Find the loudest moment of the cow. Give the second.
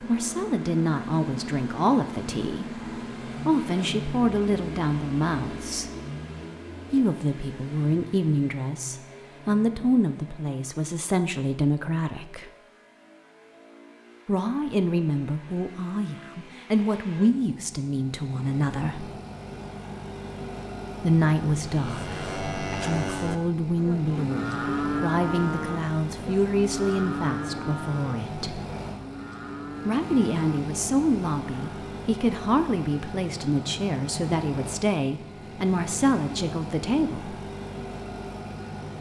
25 s.